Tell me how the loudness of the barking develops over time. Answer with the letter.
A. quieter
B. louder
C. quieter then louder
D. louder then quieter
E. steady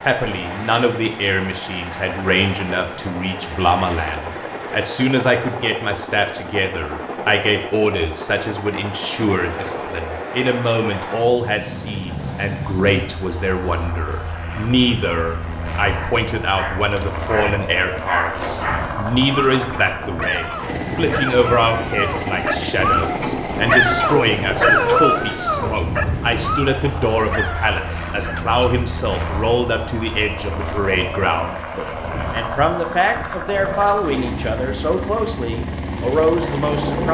D.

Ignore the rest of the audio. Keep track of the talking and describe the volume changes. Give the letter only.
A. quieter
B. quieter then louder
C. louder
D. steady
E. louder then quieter
D.